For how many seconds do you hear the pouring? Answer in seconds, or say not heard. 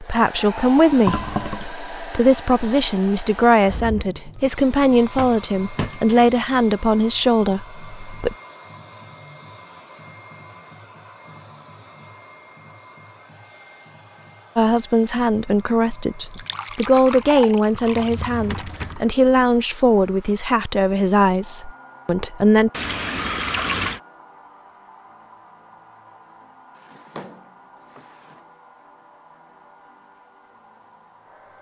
4 s.